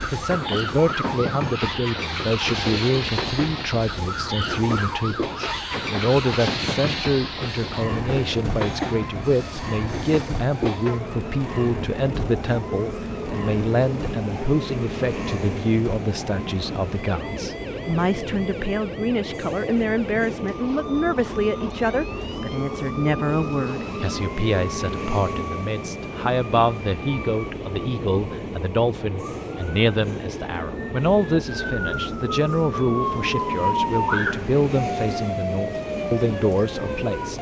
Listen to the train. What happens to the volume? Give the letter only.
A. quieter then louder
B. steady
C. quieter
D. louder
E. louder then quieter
B.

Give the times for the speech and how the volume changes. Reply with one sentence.
The speech can be heard from 0.0 to 37.3 s, at a steady volume.